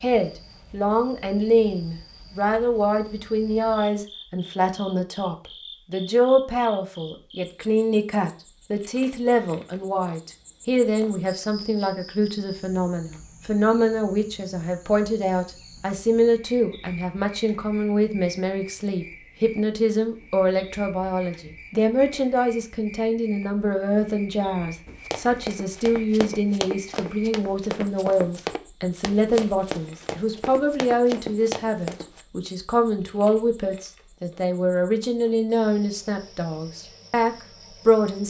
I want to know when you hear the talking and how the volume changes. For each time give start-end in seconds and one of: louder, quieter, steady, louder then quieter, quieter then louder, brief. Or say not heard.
0.0-38.2 steady.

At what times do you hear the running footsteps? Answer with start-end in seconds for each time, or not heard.
24.9-32.2.